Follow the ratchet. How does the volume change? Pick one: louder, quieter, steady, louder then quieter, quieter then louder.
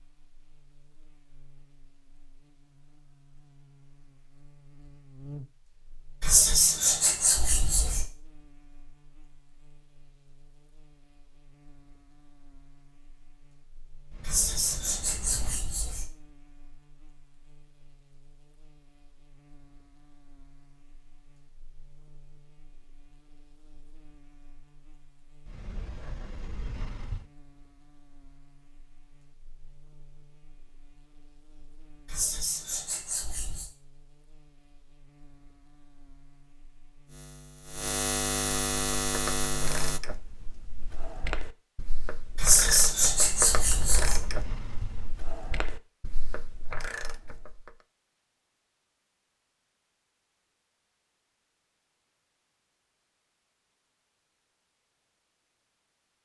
louder then quieter.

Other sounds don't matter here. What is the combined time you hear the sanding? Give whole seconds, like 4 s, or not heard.
7 s.